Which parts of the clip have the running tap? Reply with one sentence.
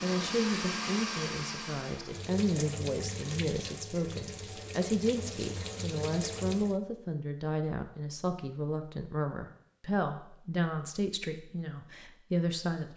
You can hear the running tap from 2.0 to 6.8 s.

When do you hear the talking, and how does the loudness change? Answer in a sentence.
You can hear the talking from 0.0 to 12.9 s, at a steady volume.